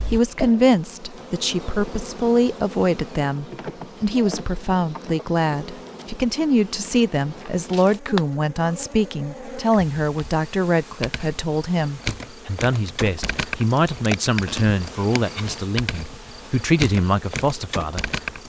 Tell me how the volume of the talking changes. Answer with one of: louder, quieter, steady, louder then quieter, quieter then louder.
steady.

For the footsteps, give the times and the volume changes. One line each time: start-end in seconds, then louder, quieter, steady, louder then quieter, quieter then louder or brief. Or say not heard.
not heard.